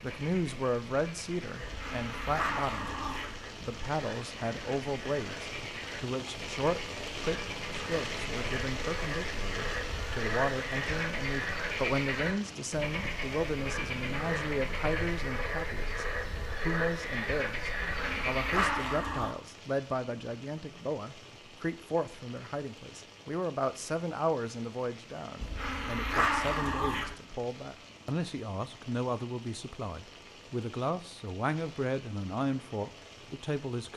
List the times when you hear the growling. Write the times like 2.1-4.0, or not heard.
1.6-3.4, 17.8-19.3, 25.4-27.1.